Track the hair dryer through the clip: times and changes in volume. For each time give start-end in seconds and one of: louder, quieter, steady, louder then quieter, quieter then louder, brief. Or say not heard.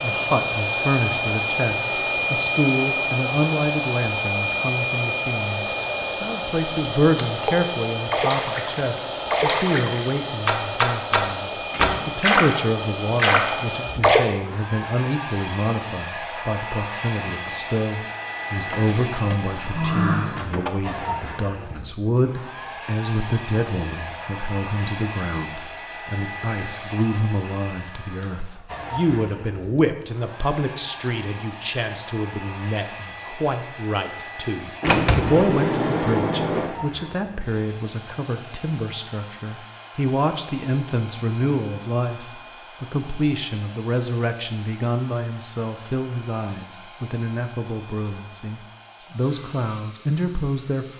0.0-50.9 quieter.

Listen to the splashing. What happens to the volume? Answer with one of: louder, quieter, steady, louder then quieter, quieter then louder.
louder.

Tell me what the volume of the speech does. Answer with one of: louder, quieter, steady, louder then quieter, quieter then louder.
steady.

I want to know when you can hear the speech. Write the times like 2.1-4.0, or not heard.
0.0-50.9.